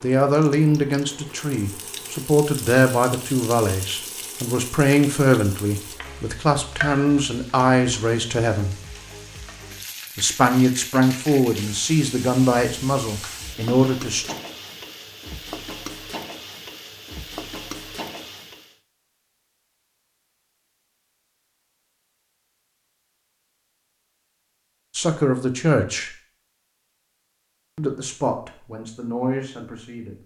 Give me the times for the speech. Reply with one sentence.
You can hear the speech from 0.0 to 8.8 s, from 10.2 to 14.3 s, from 24.9 to 26.1 s and from 27.8 to 30.1 s.